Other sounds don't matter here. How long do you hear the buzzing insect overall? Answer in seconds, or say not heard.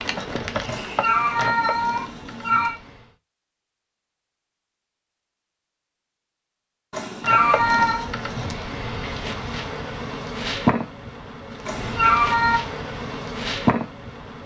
10 s.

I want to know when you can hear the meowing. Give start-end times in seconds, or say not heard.
0.7-2.8, 6.9-8.1, 11.7-12.6.